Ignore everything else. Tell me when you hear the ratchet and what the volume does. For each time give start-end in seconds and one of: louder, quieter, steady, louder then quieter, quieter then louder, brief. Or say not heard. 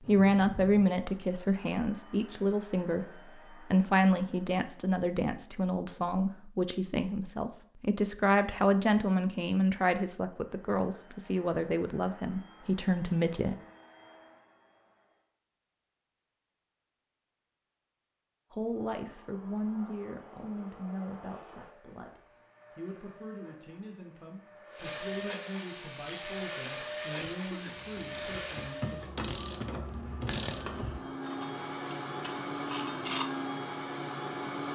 26.0-33.2 louder then quieter.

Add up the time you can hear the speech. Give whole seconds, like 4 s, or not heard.
24 s.